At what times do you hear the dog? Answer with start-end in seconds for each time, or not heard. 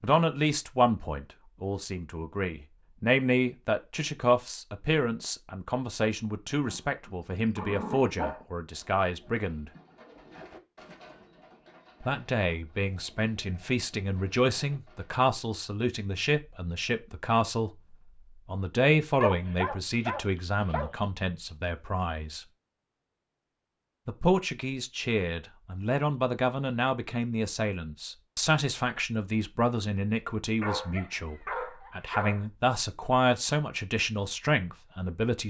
6.7-8.4, 19.2-20.9, 30.6-32.5.